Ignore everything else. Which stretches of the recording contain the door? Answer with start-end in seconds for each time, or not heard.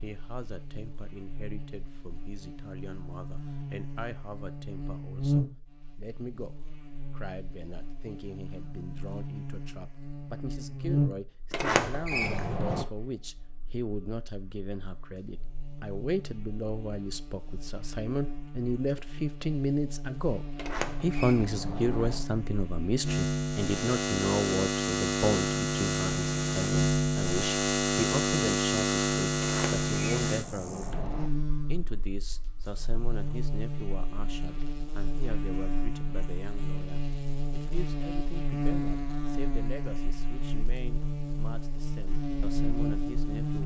11.5-12.8, 20.6-22.2, 29.4-31.3.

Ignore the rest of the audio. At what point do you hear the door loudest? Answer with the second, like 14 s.
12 s.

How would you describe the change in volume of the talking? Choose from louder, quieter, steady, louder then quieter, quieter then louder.
louder then quieter.